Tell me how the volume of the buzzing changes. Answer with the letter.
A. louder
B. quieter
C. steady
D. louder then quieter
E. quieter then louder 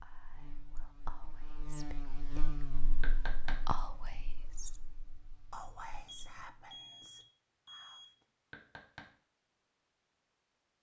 D.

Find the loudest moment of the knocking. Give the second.
3 s.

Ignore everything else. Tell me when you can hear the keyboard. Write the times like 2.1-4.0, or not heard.
not heard.